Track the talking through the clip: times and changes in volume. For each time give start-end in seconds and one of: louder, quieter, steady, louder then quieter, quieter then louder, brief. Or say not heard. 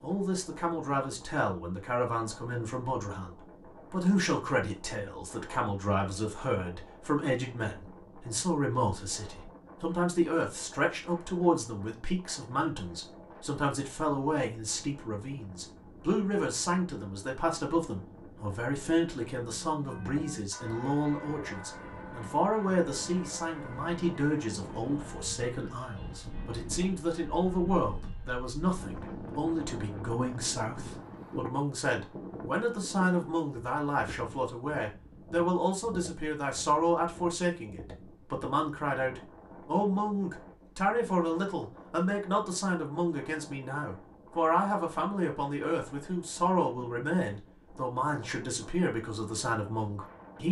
0.0-50.4 steady.